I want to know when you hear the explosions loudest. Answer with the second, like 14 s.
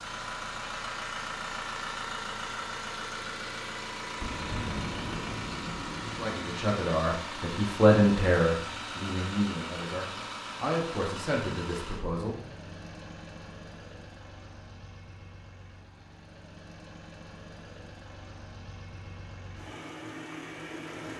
5 s.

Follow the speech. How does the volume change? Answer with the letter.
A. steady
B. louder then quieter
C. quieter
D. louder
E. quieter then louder
B.